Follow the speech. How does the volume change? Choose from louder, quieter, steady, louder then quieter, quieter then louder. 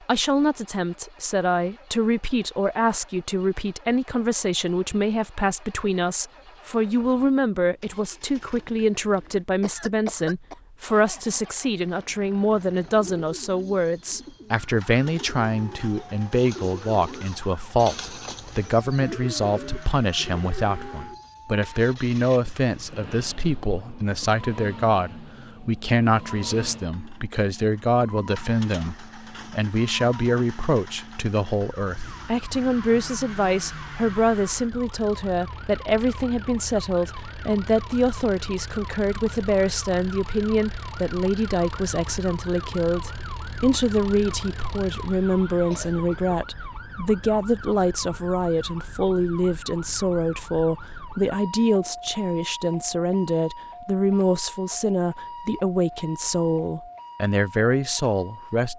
steady.